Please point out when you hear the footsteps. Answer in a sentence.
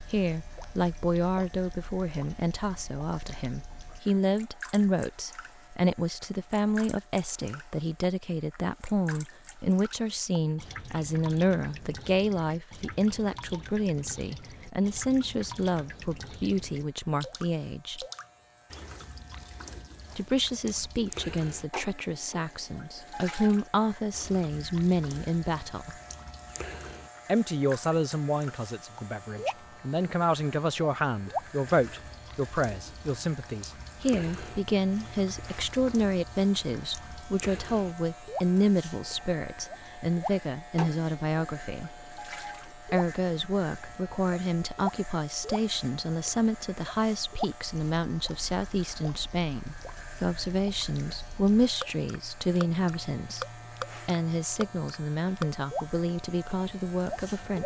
The footsteps can't be heard in this clip.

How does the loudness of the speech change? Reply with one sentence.
The loudness of the speech stays about the same.